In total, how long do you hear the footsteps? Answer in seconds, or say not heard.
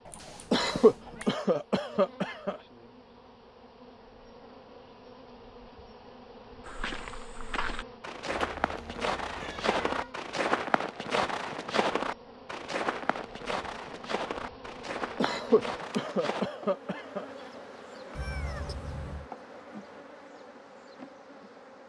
10 s.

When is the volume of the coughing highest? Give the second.
1 s.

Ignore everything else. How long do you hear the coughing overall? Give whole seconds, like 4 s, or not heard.
4 s.